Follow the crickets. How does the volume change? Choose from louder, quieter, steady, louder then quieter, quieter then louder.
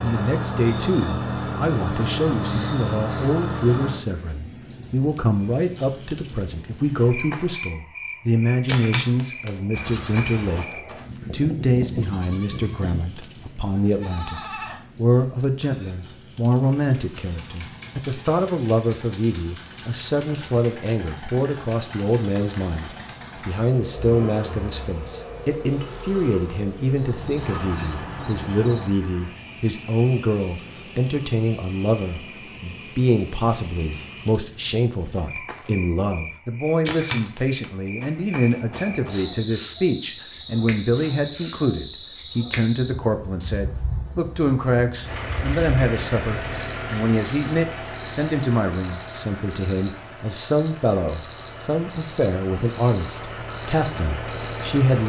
quieter then louder.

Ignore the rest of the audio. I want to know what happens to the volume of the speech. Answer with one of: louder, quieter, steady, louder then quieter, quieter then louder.
steady.